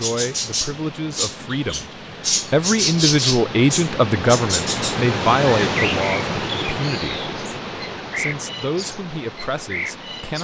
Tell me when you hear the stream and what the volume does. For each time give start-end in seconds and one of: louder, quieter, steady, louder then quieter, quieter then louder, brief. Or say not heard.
0.0-10.3 louder then quieter.